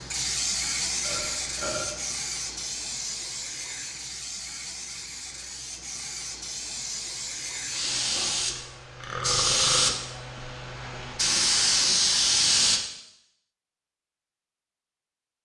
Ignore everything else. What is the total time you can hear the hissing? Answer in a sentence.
You can hear the hissing for 13 seconds altogether.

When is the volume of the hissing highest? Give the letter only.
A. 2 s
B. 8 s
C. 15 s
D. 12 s
D.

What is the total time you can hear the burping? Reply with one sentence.
You can hear the burping for 3 seconds altogether.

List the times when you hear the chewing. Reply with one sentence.
The chewing can't be heard in this clip.